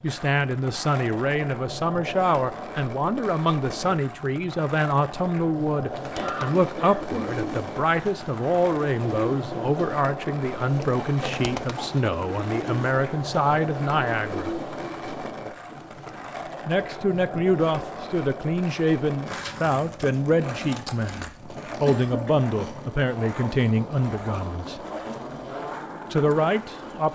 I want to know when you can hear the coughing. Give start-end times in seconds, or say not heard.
6.2-7.3, 10.9-12.1, 21.6-22.4.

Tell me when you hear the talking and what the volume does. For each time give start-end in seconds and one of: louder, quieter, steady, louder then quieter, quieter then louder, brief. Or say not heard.
0.0-14.6 steady
16.6-24.8 steady
26.1-27.1 brief.